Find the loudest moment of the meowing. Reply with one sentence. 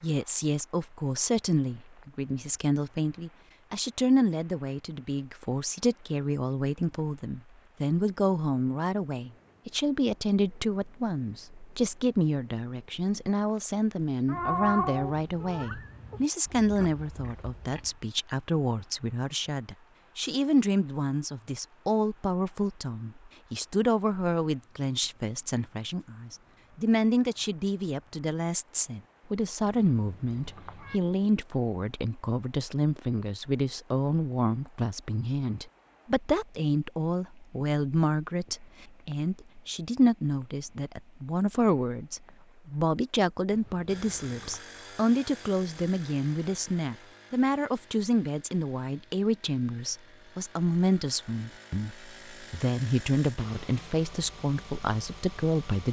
The volume of the meowing peaks at 15 seconds.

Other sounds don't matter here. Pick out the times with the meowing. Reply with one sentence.
The meowing can be heard from 14.2 to 16.2 s, from 29.6 to 31.0 s and from 43.5 to 44.6 s.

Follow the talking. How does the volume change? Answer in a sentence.
The loudness of the talking stays about the same.